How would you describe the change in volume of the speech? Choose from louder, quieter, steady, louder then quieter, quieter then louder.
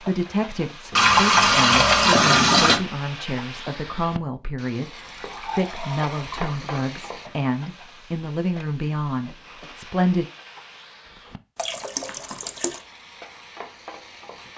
steady.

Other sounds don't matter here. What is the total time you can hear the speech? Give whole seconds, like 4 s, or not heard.
10 s.